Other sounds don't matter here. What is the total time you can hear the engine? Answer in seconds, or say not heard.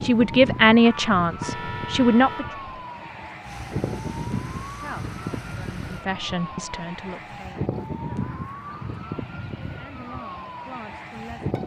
3 s.